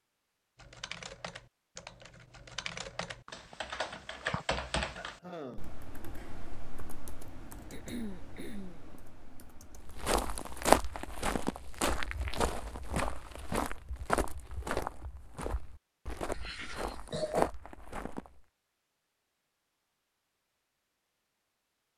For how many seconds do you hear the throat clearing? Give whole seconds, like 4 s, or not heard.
3 s.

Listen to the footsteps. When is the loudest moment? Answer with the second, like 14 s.
11 s.